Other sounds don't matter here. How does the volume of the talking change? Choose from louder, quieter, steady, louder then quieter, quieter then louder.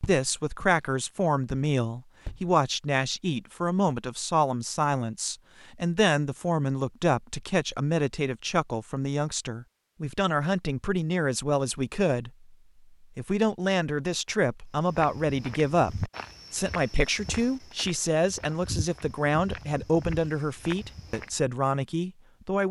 steady.